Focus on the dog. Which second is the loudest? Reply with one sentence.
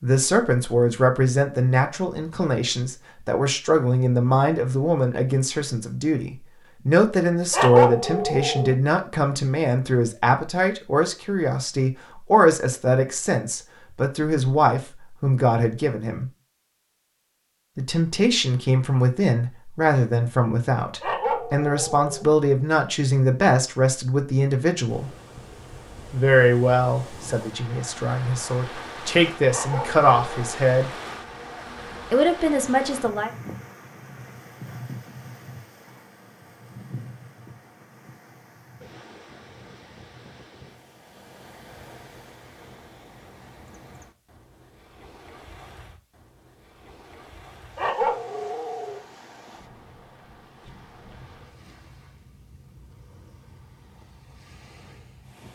The loudest moment of the dog is at 8 seconds.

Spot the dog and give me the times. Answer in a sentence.
The dog can be heard from 7.5 to 8.8 s, from 21.0 to 22.2 s, from 29.4 to 30.5 s and from 47.8 to 49.0 s.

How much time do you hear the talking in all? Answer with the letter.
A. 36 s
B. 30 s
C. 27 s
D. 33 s
B.